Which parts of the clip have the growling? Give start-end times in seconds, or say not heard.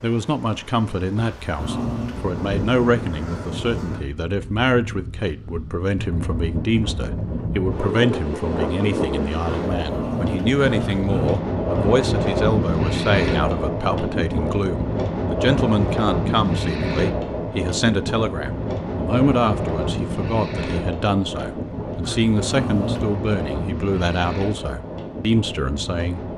1.1-2.3, 9.7-11.3, 22.0-23.1.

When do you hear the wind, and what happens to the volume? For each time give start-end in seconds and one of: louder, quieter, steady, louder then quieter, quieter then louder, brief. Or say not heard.
0.0-26.3 louder then quieter.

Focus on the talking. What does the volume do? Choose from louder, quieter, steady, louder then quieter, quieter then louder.
steady.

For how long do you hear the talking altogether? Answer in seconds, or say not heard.
26 s.